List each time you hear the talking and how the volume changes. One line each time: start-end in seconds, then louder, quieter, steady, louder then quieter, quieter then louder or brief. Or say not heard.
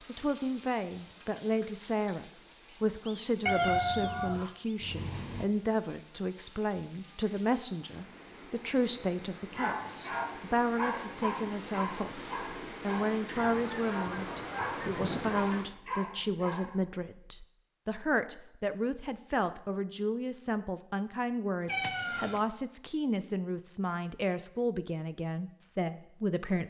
0.1-26.6 steady.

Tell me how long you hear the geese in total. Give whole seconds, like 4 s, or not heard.
4 s.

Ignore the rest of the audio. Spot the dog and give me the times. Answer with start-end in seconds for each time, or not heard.
9.6-16.8.